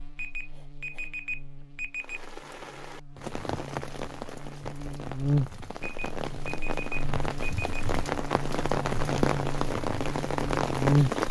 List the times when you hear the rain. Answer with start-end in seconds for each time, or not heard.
2.0-11.2.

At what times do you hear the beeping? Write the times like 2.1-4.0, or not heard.
0.1-2.2, 5.8-7.8.